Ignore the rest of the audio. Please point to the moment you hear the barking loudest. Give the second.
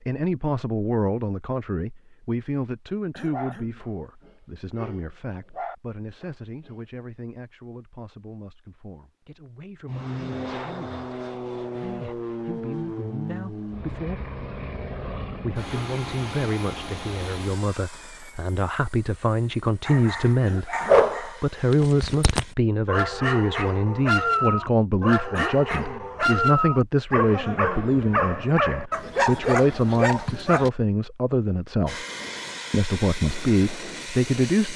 21 s.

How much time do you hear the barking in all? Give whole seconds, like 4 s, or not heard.
14 s.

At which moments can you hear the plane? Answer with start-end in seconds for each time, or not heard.
9.8-22.6, 31.9-34.7.